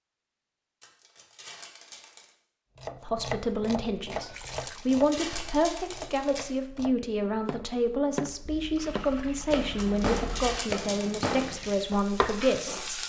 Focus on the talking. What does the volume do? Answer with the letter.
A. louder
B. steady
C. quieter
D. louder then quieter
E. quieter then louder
B.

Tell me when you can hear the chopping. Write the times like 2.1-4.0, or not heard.
2.8-13.0.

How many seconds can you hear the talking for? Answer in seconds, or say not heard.
10 s.